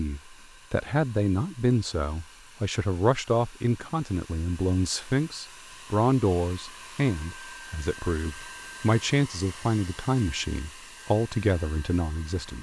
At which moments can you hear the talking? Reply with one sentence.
The talking can be heard from 0.0 to 12.5 s.